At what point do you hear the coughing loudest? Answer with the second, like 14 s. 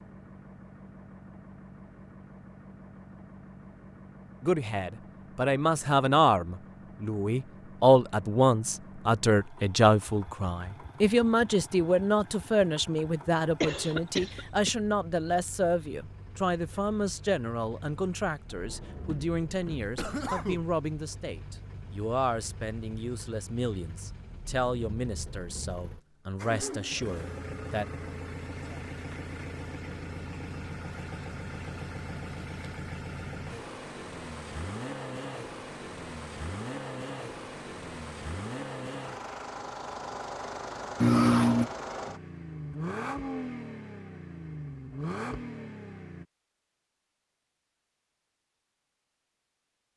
41 s.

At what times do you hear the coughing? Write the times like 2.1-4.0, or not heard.
13.6-14.7, 19.9-20.8, 41.0-41.7.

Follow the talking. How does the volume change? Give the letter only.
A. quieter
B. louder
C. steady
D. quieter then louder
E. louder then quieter
A.